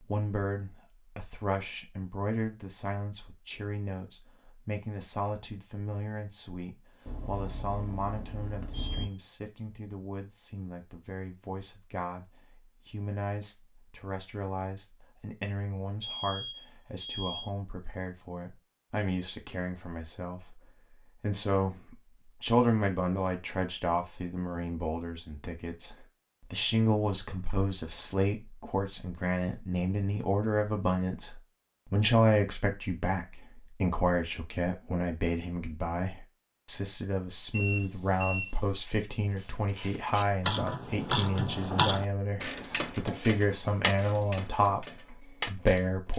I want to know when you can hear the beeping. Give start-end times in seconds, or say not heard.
7.0-9.1, 16.0-17.4, 37.5-38.5.